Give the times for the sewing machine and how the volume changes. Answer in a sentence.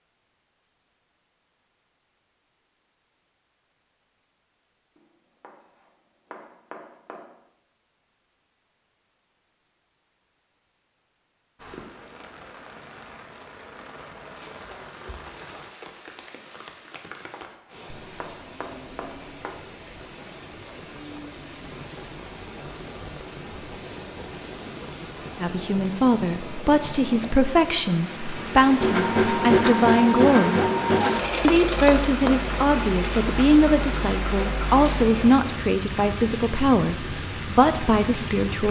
You can hear the sewing machine from 28.5 to 35.8 s, getting quieter.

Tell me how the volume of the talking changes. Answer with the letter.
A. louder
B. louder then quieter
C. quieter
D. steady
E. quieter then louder
D.